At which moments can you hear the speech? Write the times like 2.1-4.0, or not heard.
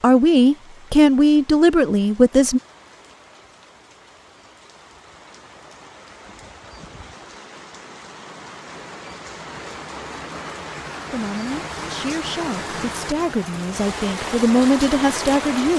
0.0-2.6, 11.1-15.7.